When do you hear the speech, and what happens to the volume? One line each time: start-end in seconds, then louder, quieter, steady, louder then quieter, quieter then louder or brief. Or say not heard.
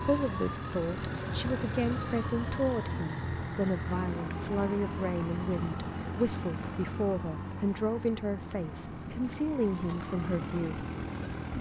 0.0-10.8 steady.